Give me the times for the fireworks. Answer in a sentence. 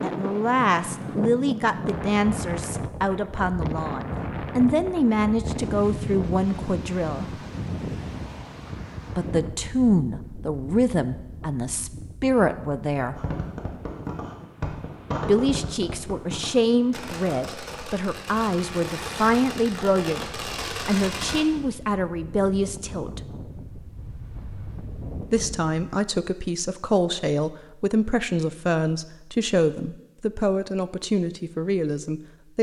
You can hear the fireworks from 13.1 to 21.4 s.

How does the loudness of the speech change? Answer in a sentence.
The volume of the speech stays about the same.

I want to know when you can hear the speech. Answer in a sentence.
The speech can be heard from 0.0 to 7.2 s, from 9.2 to 13.2 s, from 15.2 to 23.2 s and from 25.2 to 32.5 s.